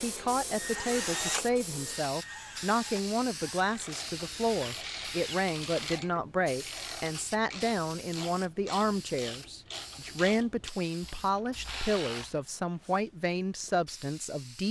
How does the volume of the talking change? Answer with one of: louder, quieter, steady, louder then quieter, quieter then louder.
steady.